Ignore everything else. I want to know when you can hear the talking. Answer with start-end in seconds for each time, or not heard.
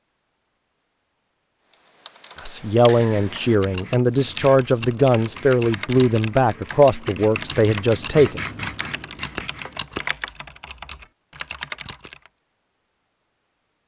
2.5-8.4.